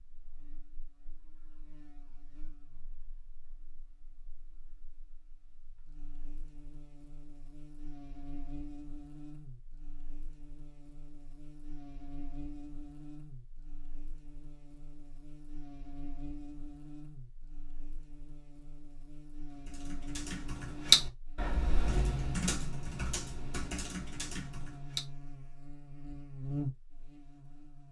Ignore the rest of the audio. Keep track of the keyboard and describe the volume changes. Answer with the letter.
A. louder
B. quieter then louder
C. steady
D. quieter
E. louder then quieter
D.